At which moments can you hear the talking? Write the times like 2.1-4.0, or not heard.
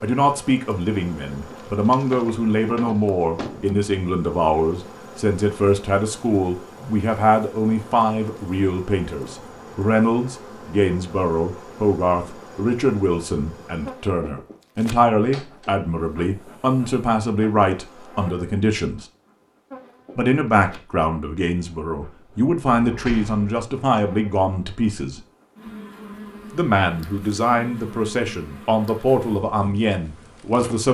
0.0-19.1, 20.1-25.2, 26.5-30.8.